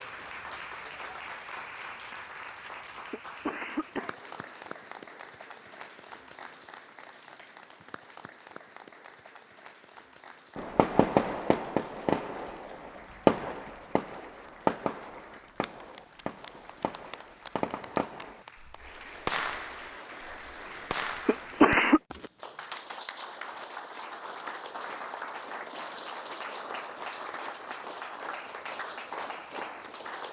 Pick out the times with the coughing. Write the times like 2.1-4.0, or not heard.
3.1-4.7, 21.2-22.0.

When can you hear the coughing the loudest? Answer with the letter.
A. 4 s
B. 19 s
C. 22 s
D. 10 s
C.